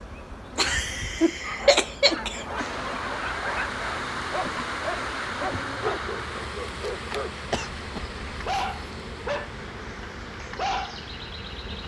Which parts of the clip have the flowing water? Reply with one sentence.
The flowing water can be heard from 2.5 to 11.8 s.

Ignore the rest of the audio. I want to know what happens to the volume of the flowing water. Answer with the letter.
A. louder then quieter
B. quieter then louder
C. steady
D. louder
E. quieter
E.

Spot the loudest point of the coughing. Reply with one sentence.
The volume of the coughing peaks at 2 seconds.